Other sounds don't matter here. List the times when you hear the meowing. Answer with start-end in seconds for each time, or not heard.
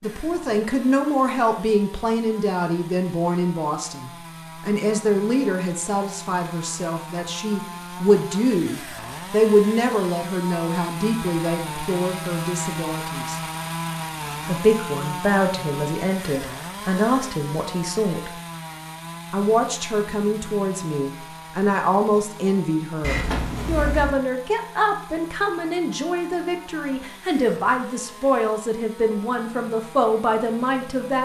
23.0-24.1.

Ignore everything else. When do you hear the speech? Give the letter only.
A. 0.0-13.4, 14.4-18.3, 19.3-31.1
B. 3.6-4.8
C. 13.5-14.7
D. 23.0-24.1
A.